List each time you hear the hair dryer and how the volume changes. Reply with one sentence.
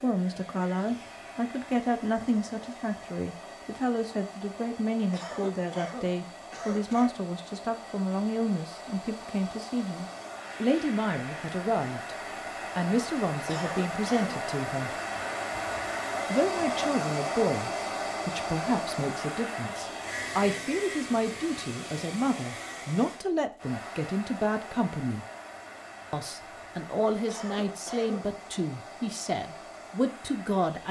The hair dryer can be heard from 0.0 to 30.8 s, getting louder then quieter.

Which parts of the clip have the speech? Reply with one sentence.
The speech can be heard from 0.0 to 12.2 s, from 12.8 to 14.9 s, from 16.3 to 25.2 s and from 26.1 to 30.8 s.